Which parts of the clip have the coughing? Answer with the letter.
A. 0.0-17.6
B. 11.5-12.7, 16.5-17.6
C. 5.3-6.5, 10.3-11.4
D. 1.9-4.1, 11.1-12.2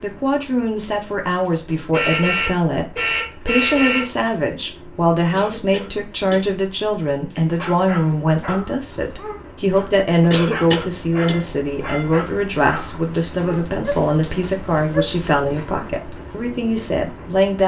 C.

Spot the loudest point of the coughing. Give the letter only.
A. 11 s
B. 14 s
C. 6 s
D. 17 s
A.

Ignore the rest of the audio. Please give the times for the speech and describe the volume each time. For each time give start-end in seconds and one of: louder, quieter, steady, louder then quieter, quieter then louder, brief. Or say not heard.
0.0-17.6 steady.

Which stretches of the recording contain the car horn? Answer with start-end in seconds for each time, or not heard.
1.9-4.1, 11.1-12.2.